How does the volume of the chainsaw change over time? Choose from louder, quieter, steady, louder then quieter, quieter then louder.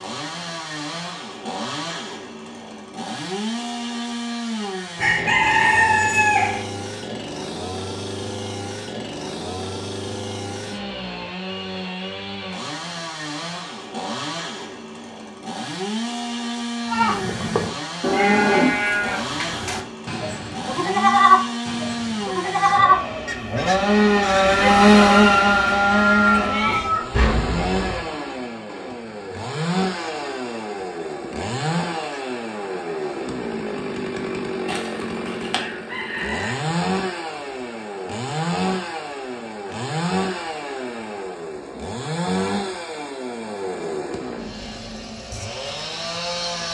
louder then quieter.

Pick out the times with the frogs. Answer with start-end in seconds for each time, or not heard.
not heard.